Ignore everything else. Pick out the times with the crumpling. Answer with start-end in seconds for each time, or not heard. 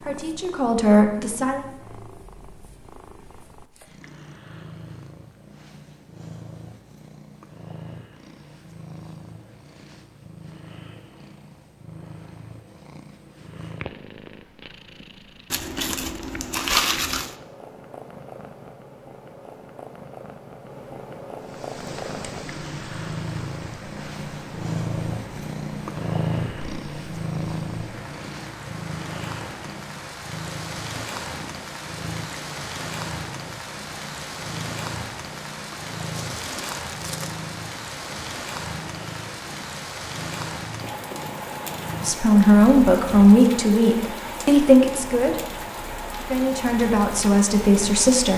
15.5-17.4, 36.4-37.5.